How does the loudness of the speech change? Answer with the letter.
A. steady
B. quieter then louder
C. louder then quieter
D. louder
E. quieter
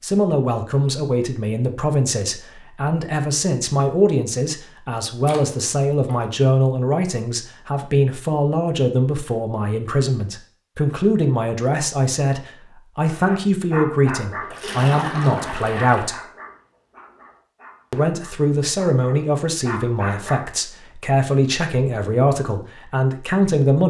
A.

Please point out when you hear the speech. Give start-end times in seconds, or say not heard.
0.0-16.2, 17.9-23.8.